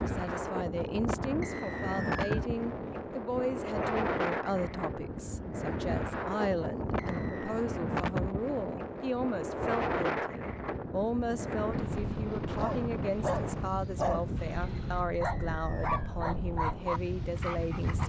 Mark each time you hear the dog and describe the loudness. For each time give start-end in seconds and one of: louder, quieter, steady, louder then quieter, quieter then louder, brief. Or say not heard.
12.6-18.0 steady.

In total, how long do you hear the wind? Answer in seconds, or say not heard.
18 s.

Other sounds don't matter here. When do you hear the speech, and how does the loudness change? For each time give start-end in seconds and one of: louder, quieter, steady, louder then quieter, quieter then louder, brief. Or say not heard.
0.0-18.0 steady.